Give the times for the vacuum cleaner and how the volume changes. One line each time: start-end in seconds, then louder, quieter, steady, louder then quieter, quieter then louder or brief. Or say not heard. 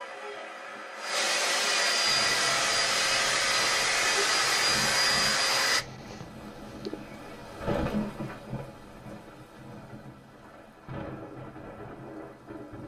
0.0-5.8 louder.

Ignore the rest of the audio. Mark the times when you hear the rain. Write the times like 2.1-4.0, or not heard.
2.0-12.8.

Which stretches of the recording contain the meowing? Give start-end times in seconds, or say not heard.
5.7-7.5.